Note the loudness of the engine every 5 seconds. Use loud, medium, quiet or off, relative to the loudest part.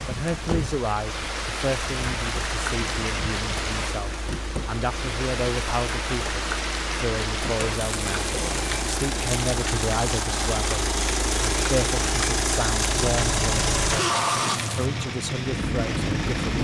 medium, medium, loud, loud.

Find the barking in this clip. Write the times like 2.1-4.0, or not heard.
not heard.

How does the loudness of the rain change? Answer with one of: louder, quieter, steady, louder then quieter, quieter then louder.
steady.